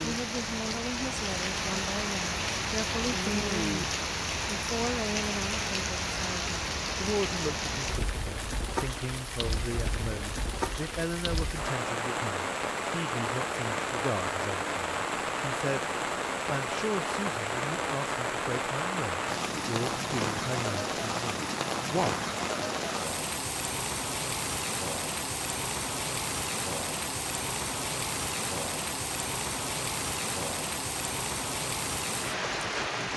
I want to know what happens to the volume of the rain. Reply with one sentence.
The volume of the rain stays about the same.